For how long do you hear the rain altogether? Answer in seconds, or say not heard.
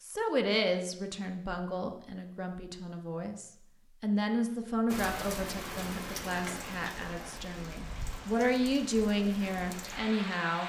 6 s.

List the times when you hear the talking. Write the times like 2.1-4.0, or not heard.
0.0-10.6.